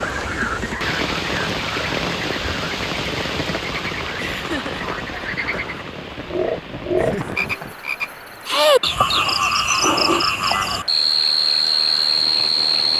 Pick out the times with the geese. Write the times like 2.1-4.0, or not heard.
not heard.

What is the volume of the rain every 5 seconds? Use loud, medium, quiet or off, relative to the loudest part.
loud, medium, medium.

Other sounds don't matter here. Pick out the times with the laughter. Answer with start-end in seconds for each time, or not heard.
4.2-4.8, 7.0-7.8.